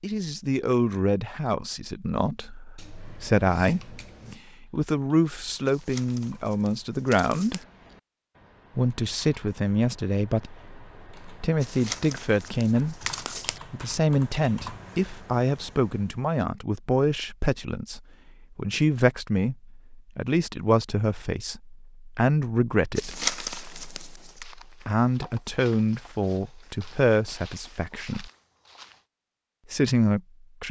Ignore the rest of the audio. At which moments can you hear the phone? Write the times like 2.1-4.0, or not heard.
not heard.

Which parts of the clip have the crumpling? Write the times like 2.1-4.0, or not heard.
5.7-7.7, 11.6-13.6, 22.9-24.4.